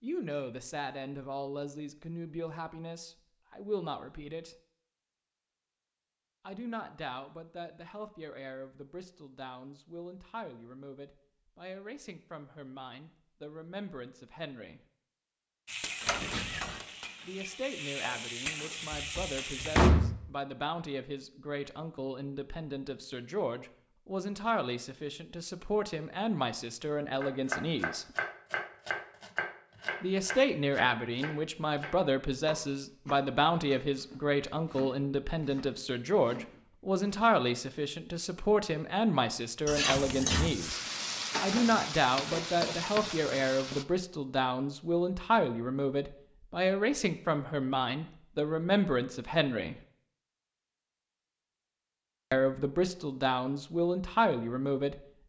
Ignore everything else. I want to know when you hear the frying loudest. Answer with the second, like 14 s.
40 s.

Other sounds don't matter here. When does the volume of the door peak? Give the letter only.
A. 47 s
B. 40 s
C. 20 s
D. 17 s
C.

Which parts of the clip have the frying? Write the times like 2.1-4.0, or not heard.
15.7-19.9, 39.6-43.9.